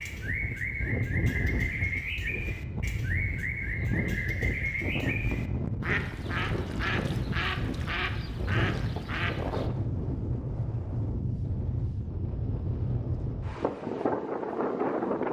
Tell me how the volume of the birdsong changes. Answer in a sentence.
The volume of the birdsong stays about the same.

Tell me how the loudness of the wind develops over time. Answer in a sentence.
The loudness of the wind stays about the same.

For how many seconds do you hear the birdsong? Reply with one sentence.
You can hear the birdsong for 10 seconds altogether.